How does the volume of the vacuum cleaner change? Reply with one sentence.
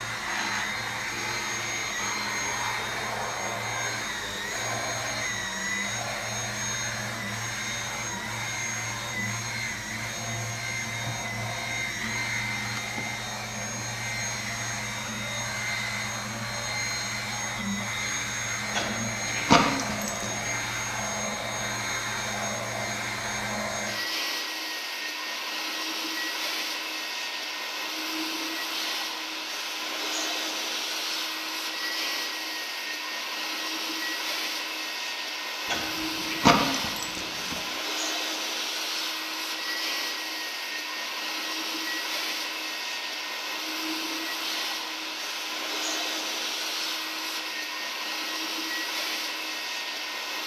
The volume of the vacuum cleaner stays about the same.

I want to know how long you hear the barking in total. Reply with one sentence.
You can hear the barking for 4 seconds altogether.